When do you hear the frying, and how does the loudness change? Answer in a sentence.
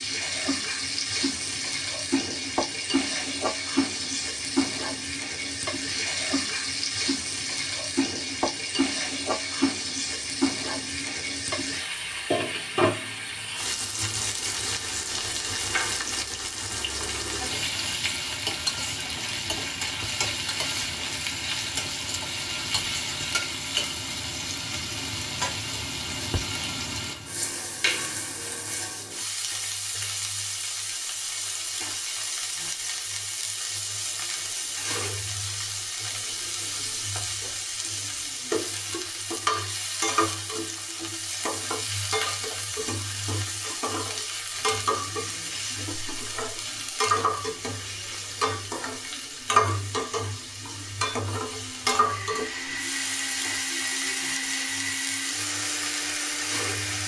The frying can be heard from 0.0 to 57.0 s, at a steady volume.